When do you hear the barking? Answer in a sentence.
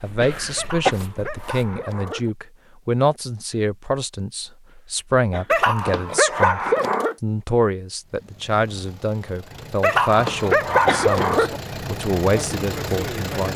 The barking can be heard from 0.6 to 2.3 s, from 5.5 to 7.2 s and from 9.8 to 11.6 s.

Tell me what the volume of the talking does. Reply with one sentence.
The volume of the talking stays about the same.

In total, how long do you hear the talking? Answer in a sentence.
The talking can be heard for 13 seconds in total.